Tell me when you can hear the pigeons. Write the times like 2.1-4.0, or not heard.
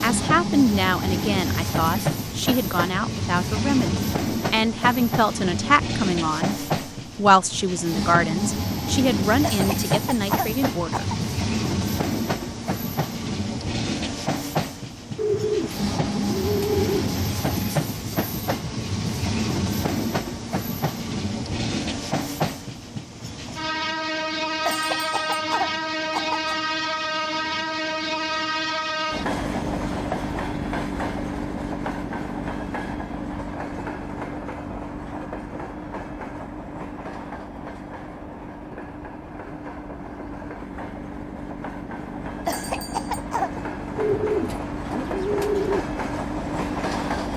15.2-17.1, 44.0-45.9.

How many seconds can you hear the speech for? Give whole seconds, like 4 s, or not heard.
11 s.